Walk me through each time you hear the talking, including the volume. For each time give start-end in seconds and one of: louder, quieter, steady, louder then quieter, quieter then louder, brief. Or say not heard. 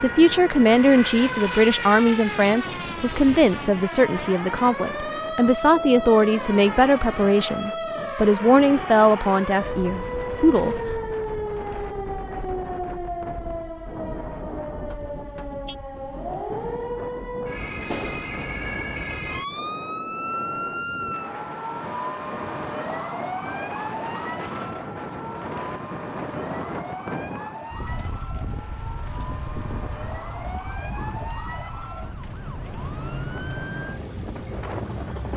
0.0-10.8 steady.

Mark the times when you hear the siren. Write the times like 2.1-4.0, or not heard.
0.0-35.3.